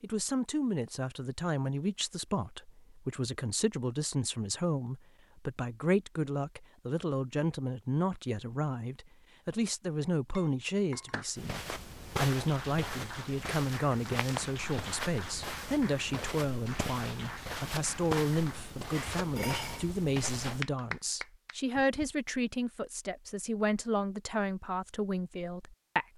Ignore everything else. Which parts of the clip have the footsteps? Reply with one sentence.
The footsteps can be heard from 11.3 to 20.6 s.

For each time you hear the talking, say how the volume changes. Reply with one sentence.
You can hear the talking from 0.0 to 26.1 s, at a steady volume.